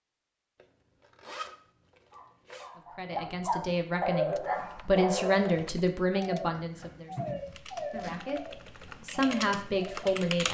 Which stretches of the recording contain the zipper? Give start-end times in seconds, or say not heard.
0.6-2.7, 7.3-8.2.